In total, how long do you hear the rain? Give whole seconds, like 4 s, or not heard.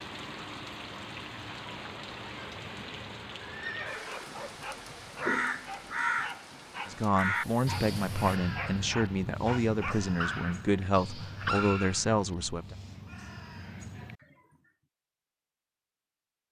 8 s.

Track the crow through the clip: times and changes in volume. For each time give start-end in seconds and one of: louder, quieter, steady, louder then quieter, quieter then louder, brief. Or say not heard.
4.4-14.7 quieter.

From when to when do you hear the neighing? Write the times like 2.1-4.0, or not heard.
3.4-4.6.